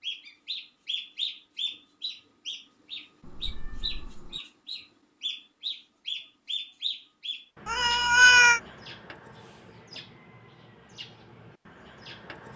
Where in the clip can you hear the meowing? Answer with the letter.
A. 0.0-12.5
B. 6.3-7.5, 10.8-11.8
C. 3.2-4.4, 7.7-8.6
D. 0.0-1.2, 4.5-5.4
C.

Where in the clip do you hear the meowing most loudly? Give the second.
8 s.